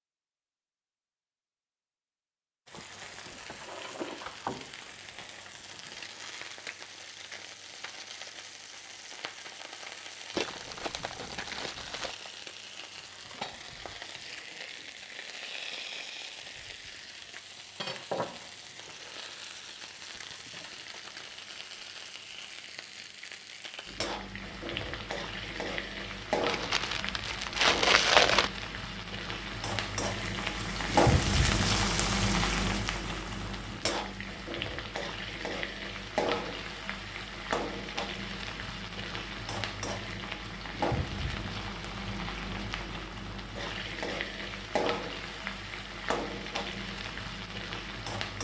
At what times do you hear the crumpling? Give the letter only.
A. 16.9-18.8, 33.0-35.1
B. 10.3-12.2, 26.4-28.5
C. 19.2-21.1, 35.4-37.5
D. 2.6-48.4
B.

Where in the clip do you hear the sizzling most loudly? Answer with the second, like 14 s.
31 s.